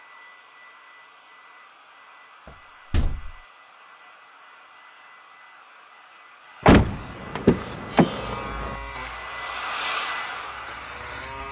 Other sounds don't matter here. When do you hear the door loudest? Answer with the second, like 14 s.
7 s.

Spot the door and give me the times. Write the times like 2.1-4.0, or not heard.
2.5-3.4, 6.7-8.8.